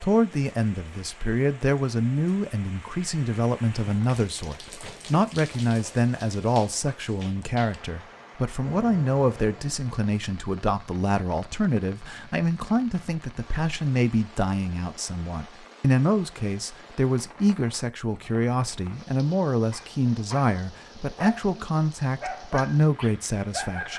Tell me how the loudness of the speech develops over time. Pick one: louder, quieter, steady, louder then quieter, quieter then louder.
steady.